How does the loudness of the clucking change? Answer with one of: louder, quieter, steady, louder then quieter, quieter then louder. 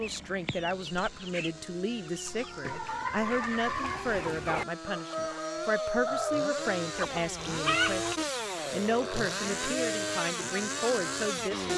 louder.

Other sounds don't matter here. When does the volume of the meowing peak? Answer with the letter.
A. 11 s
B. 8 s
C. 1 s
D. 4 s
D.